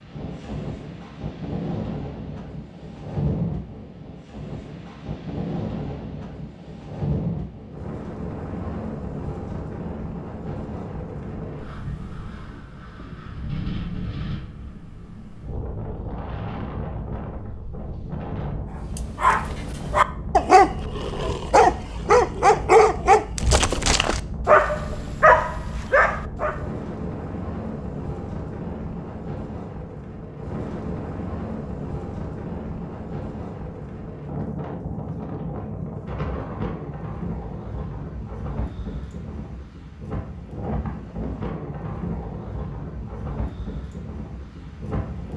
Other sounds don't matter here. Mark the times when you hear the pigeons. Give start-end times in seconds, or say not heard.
not heard.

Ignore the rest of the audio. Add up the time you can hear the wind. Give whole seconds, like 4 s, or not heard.
45 s.